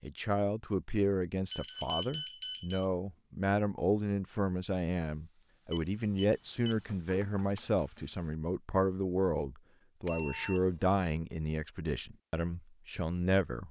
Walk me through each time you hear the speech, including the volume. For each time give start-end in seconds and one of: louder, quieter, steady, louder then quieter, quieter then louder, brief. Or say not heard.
0.0-13.6 steady.